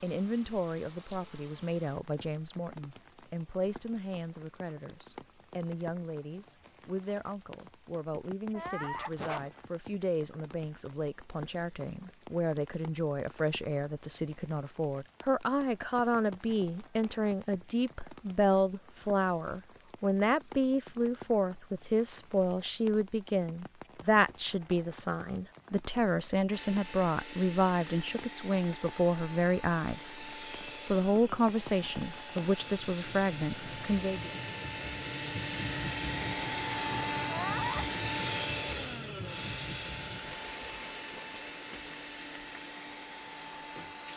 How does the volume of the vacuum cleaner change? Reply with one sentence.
The loudness of the vacuum cleaner goes up, then down.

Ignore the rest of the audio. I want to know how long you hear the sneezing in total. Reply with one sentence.
You can hear the sneezing for 2 seconds altogether.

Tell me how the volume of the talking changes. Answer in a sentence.
The loudness of the talking goes up.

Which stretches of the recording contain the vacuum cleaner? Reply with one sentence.
The vacuum cleaner can be heard from 26.5 to 44.1 s.